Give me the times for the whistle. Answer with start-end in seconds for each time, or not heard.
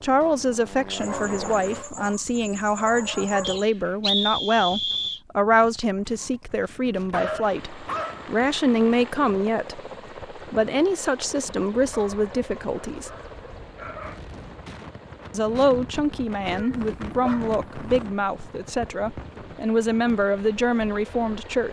3.4-5.2.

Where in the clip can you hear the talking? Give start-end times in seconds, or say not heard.
0.0-13.1, 15.3-21.6.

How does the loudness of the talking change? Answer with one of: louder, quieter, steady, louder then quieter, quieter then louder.
steady.